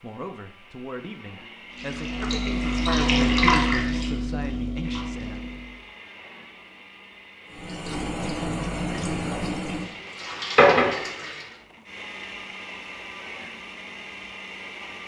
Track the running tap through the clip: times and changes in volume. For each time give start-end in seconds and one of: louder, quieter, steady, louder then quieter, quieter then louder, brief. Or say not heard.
1.7-5.8 louder then quieter
7.5-11.5 quieter then louder.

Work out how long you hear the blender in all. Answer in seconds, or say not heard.
13 s.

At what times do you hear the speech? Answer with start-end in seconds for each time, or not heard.
0.0-5.5.